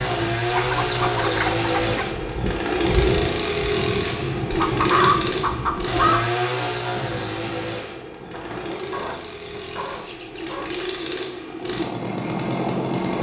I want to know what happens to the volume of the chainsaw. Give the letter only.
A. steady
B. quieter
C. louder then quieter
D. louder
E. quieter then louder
E.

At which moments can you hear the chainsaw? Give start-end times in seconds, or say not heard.
0.0-13.1.